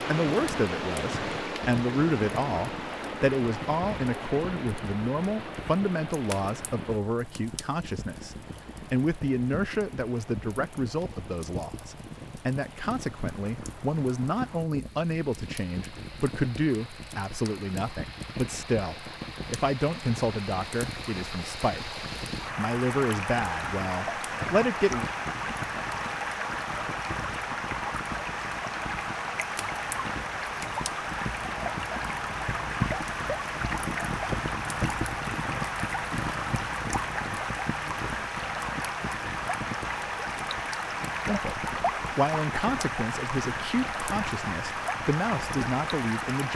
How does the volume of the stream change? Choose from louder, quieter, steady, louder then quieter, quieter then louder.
quieter then louder.